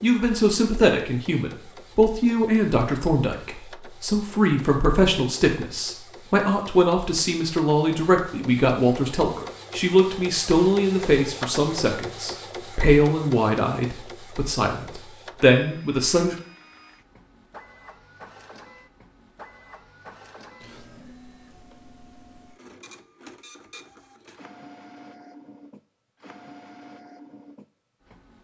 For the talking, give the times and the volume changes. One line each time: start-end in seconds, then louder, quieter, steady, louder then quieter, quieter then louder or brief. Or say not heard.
0.0-16.4 steady.